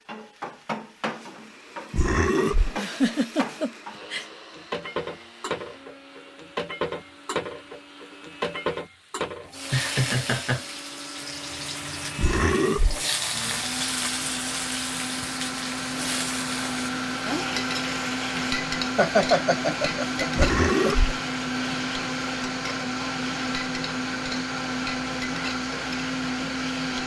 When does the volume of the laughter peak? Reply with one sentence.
The volume of the laughter peaks at 19 seconds.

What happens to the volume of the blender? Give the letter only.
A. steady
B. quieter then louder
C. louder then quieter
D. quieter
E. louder
E.